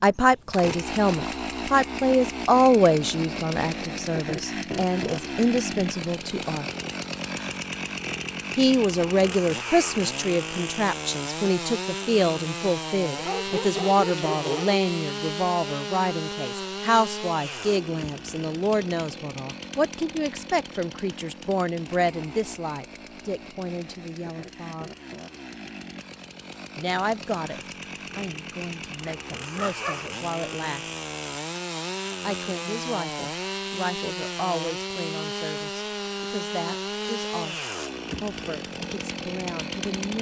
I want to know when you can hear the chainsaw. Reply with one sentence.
The chainsaw can be heard from 0.0 to 40.1 s.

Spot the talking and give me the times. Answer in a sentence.
The talking can be heard from 0.0 to 6.7 s, from 8.6 to 24.9 s, from 26.8 to 30.9 s, from 32.2 to 37.5 s and from 38.2 to 40.1 s.